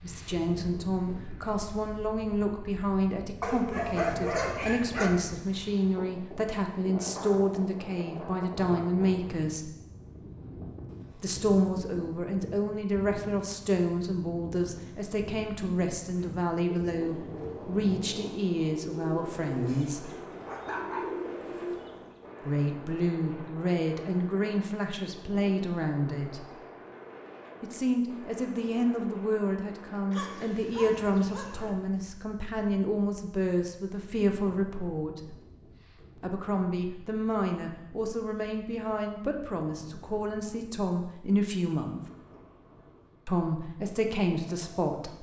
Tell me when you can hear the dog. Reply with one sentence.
The dog can be heard from 3.4 to 5.1 s, from 19.6 to 21.1 s and from 30.1 to 31.7 s.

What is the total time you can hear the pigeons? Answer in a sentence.
The pigeons can be heard for 6 seconds in total.